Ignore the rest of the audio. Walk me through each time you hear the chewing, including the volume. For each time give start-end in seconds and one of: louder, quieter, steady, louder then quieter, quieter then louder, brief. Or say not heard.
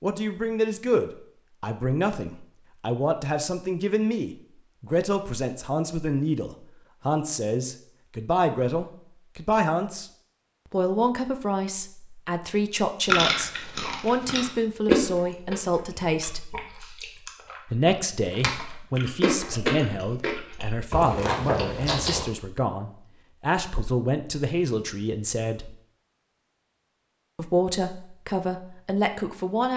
13.1-22.2 quieter then louder.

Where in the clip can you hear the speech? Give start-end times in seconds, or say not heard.
0.0-10.1, 10.7-16.6, 17.7-25.8, 27.4-29.7.